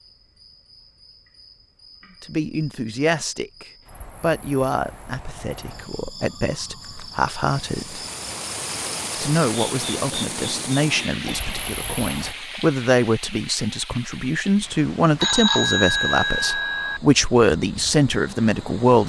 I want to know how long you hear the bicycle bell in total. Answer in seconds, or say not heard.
2 s.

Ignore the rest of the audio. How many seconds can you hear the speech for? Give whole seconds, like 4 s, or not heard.
16 s.